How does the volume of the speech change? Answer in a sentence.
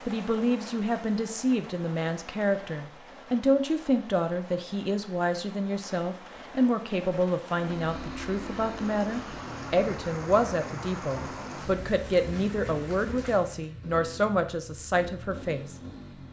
The volume of the speech stays about the same.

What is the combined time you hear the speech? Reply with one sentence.
You can hear the speech for 16 seconds altogether.